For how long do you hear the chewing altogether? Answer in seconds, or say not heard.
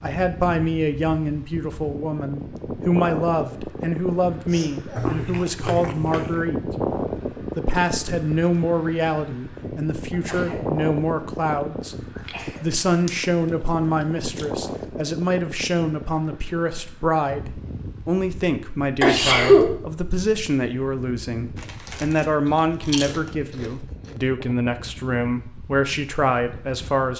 7 s.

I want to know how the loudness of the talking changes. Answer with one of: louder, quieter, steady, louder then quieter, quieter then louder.
steady.